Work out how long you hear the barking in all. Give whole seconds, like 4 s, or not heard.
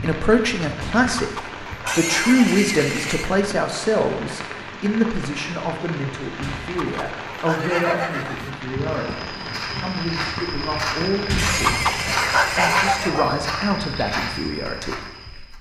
6 s.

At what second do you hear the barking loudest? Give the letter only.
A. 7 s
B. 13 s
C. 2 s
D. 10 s
B.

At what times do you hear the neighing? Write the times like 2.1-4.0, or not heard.
1.9-3.4, 7.4-8.6, 11.3-13.2.